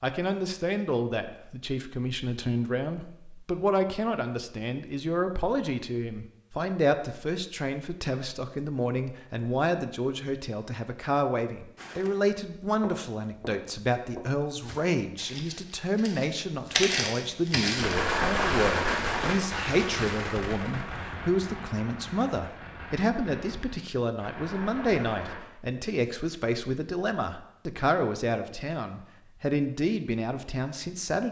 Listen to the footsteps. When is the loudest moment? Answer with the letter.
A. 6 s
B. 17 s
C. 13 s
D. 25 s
B.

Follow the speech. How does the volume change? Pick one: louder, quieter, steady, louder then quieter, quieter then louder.
steady.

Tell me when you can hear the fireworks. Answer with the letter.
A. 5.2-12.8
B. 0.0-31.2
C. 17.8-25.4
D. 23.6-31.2
C.